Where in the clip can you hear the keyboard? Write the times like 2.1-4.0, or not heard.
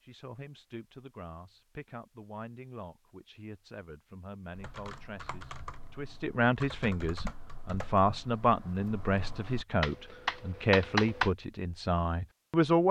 4.5-11.3.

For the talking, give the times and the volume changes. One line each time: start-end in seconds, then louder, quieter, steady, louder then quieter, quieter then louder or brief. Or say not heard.
0.0-12.8 louder.